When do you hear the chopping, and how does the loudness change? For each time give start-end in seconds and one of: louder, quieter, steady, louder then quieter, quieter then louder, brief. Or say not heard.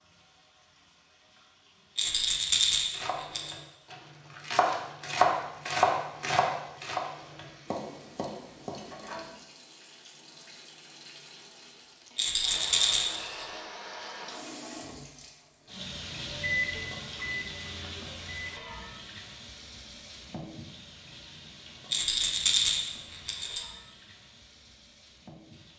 2.9-9.2 louder then quieter.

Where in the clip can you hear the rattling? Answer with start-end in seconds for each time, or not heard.
1.9-3.5, 12.2-13.2, 21.9-23.6.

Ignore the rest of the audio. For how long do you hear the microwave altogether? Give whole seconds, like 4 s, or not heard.
2 s.